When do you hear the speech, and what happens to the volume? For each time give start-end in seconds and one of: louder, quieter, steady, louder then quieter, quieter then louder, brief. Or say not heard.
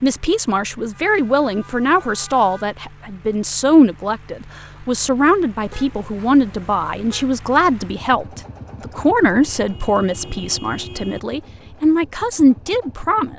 0.0-13.3 steady.